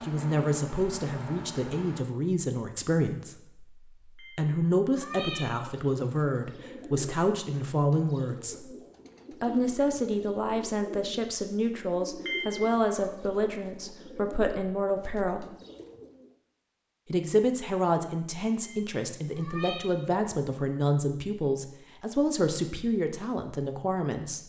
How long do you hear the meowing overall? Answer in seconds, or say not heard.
3 s.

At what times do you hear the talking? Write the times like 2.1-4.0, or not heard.
0.0-8.7, 9.4-15.4, 17.1-24.4.